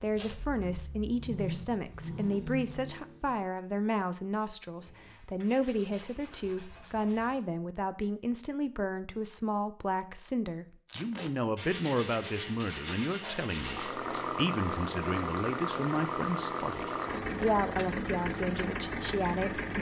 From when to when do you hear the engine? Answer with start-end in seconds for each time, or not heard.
0.1-3.4, 13.6-19.7.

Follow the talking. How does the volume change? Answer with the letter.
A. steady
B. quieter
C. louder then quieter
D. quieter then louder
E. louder
A.